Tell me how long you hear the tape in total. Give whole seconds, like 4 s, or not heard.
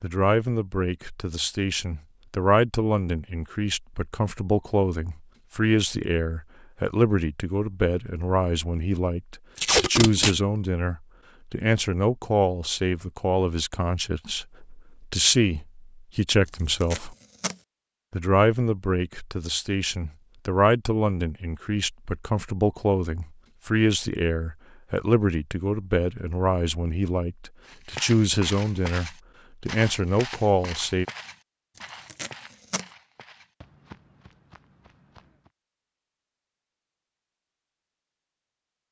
2 s.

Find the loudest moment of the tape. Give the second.
10 s.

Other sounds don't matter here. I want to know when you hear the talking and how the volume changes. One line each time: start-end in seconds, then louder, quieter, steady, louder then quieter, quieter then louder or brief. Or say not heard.
0.0-17.1 steady
18.1-31.1 steady.